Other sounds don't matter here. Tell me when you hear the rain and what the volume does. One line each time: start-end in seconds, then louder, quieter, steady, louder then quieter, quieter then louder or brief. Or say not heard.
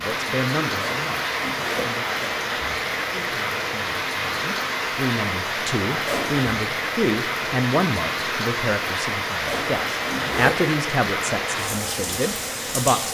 0.0-13.1 steady.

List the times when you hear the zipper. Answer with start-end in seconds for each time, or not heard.
0.8-2.0, 6.0-6.5, 9.4-10.7.